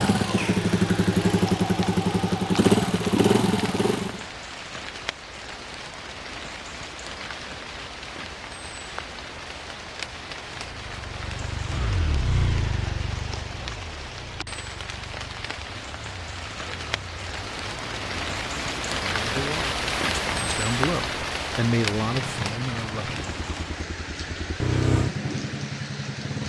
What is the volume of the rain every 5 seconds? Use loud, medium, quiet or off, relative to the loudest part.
medium, medium, medium, loud, loud, medium.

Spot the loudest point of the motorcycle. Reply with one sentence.
The loudest moment of the motorcycle is at 3 seconds.